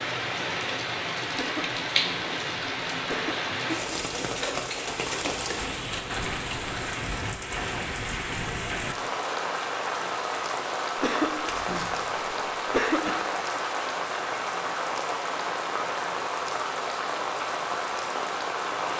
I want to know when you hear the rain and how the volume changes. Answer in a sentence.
You can hear the rain from 0.0 to 18.9 s, at a steady volume.